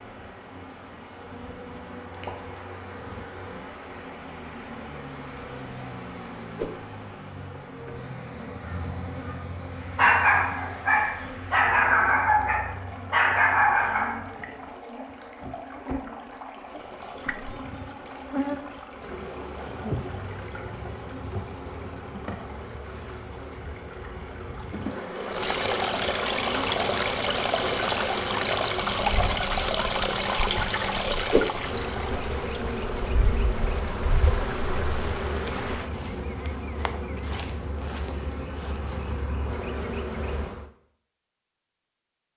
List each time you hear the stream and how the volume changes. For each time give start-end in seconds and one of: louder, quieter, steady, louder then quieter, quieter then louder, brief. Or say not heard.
0.0-35.9 louder.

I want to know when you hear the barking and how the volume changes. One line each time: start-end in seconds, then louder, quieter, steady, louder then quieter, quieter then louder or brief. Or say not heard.
8.5-14.2 louder.